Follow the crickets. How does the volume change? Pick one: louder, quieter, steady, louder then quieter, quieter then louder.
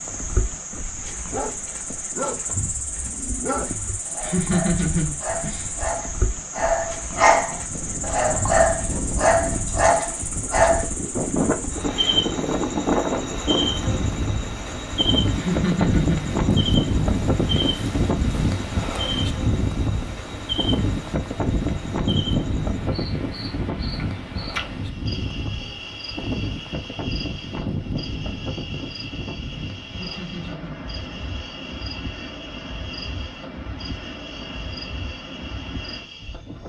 quieter.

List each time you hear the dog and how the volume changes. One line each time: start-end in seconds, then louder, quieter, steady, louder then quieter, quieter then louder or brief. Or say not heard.
1.3-10.8 louder.